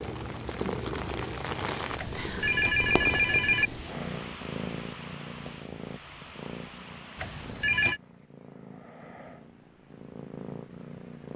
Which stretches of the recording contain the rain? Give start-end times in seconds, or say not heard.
0.0-7.8.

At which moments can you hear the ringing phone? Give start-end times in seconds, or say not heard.
1.9-3.7, 7.2-8.0.